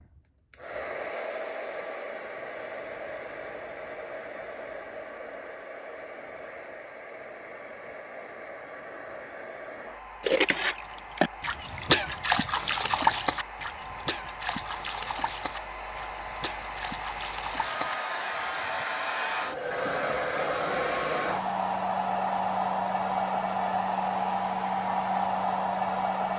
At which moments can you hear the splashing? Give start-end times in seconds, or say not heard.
10.2-18.9.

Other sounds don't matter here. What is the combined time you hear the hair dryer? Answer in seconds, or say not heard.
26 s.